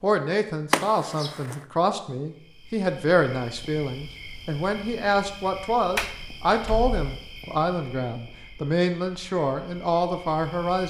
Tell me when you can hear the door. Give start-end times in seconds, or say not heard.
0.7-1.6, 6.0-7.0.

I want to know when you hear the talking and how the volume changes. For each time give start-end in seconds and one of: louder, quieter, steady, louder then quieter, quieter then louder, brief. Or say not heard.
0.0-10.8 steady.